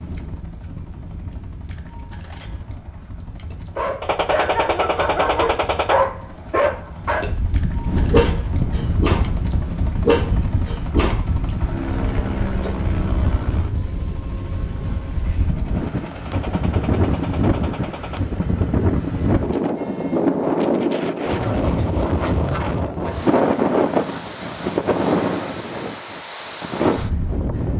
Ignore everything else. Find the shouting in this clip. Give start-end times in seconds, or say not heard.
not heard.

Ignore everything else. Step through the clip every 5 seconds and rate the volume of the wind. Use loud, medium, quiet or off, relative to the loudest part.
quiet, medium, medium, loud, loud, loud.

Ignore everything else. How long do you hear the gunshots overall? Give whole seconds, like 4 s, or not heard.
4 s.